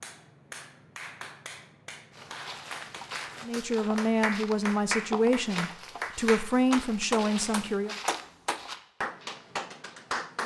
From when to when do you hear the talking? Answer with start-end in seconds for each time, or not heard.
3.4-8.0.